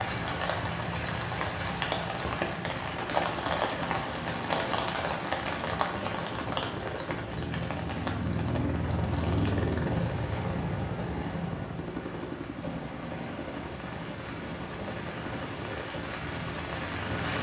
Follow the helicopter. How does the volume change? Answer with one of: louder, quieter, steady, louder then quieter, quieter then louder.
louder then quieter.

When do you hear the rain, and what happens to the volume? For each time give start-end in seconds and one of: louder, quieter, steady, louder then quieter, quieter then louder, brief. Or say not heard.
0.0-17.3 quieter then louder.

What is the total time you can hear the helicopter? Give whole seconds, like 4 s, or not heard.
17 s.